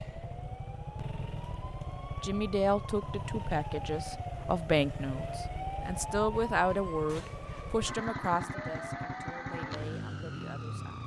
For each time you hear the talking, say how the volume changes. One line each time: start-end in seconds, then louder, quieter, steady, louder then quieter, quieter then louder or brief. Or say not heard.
2.2-11.0 quieter.